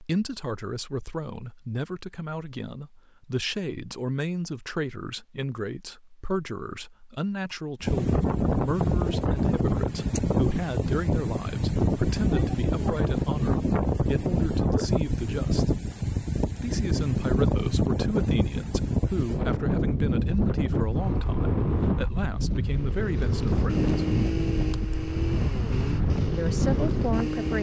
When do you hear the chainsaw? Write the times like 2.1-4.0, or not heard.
20.9-27.5.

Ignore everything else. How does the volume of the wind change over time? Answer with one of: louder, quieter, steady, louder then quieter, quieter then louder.
steady.